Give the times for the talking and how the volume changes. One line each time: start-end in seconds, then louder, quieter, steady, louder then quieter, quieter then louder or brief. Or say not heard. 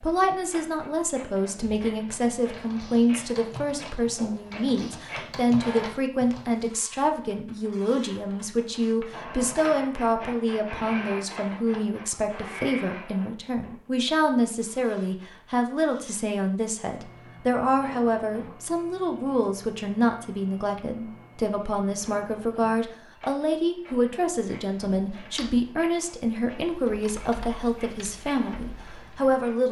0.0-29.6 steady.